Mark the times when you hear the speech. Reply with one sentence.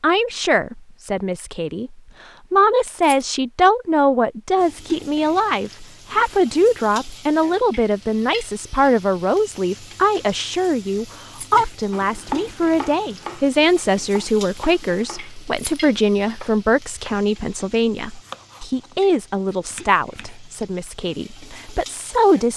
The speech can be heard from 0.0 to 22.5 s.